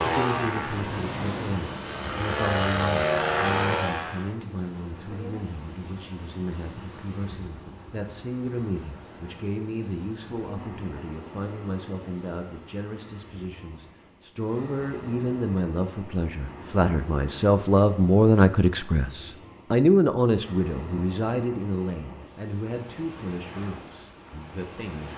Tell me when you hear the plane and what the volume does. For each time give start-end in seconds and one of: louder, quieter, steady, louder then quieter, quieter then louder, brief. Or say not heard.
0.0-4.3 quieter then louder.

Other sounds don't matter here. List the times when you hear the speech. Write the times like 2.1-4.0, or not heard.
0.0-25.1.